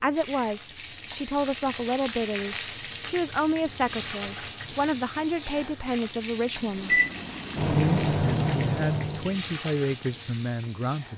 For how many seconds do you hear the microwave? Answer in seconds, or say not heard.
3 s.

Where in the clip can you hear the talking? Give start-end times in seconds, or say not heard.
0.0-7.0, 7.7-11.1.